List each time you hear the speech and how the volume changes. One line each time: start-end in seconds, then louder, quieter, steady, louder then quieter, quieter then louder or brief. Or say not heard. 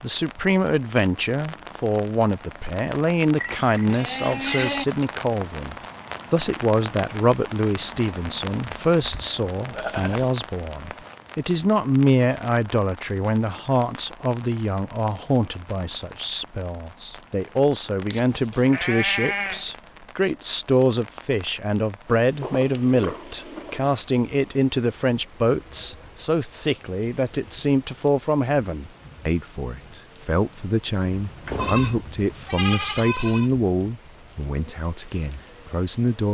0.0-36.2 steady.